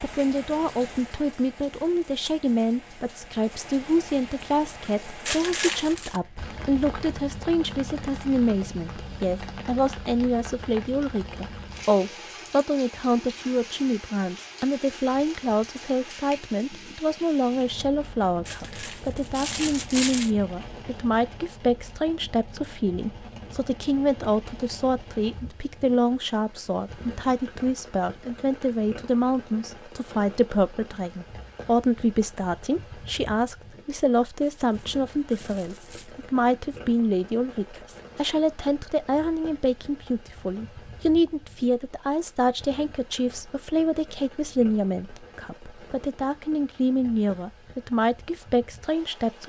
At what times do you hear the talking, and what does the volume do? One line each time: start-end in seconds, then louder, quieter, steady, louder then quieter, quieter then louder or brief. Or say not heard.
0.0-49.4 steady.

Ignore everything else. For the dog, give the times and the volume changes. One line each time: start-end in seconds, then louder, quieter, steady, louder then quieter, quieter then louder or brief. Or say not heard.
not heard.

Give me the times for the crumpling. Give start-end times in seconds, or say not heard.
5.2-6.2, 18.4-20.3, 34.4-36.1.